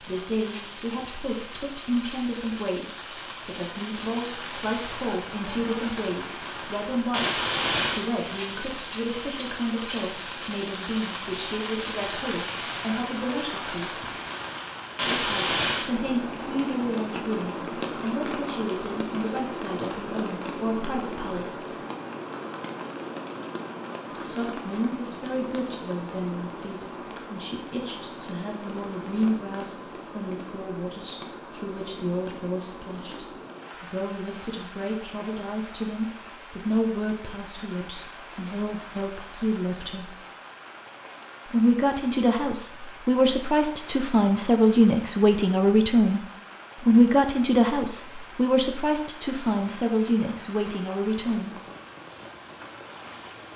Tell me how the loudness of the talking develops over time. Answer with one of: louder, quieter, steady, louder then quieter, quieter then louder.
louder.